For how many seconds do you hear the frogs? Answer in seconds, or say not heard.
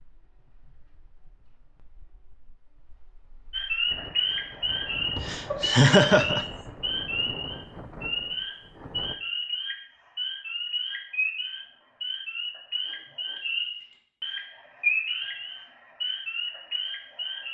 14 s.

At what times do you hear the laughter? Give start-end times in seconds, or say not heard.
5.2-6.5.